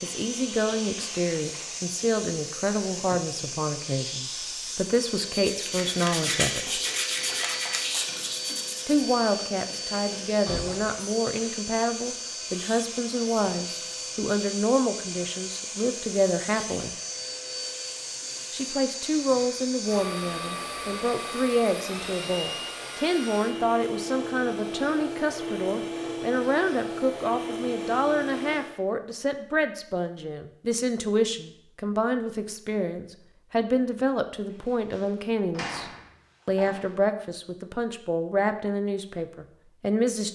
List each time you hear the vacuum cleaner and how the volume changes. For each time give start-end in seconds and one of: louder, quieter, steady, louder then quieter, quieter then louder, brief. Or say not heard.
0.0-28.8 steady.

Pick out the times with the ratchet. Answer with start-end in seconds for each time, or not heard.
not heard.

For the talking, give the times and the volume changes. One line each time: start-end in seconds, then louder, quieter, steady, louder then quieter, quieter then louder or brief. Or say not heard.
0.0-6.8 steady
8.8-16.9 steady
18.5-40.3 steady.